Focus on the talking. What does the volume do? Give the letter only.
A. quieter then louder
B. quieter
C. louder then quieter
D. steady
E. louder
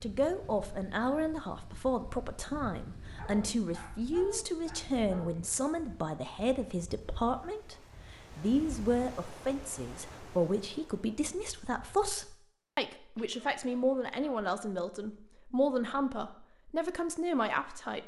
D.